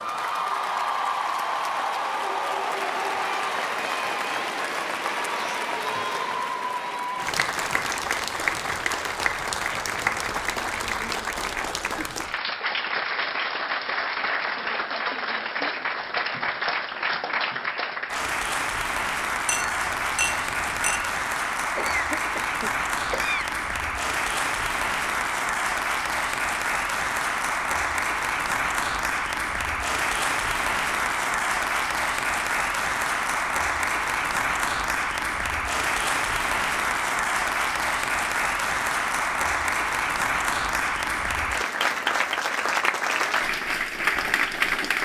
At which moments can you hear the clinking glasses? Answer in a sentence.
You can hear the clinking glasses from 19.4 to 21.2 s.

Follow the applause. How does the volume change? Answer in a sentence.
The volume of the applause stays about the same.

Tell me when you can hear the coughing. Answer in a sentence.
The coughing can be heard from 21.8 to 23.5 s.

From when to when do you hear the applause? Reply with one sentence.
The applause can be heard from 0.0 to 45.0 s.